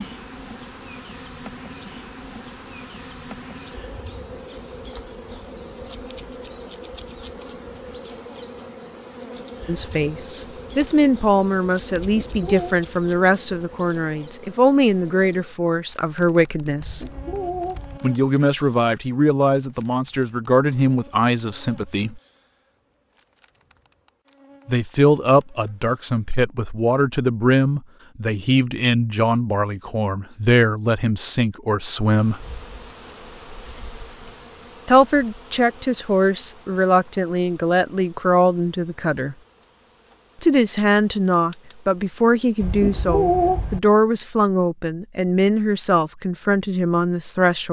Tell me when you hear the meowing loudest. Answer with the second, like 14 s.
43 s.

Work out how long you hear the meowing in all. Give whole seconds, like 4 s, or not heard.
3 s.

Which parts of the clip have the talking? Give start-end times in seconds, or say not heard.
9.7-17.1, 18.0-22.2, 24.6-32.5, 34.9-39.4, 40.4-47.6.